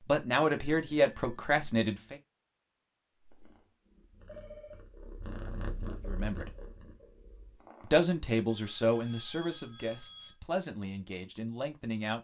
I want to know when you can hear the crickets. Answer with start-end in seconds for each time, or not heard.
not heard.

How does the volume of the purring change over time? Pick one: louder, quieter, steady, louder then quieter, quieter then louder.
louder then quieter.